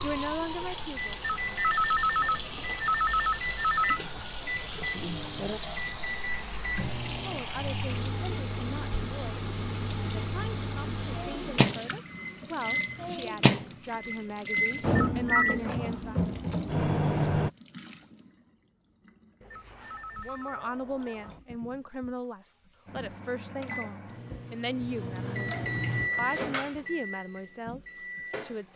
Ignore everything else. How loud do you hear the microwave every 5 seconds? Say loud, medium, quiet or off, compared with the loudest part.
medium, medium, loud, loud, quiet, medium.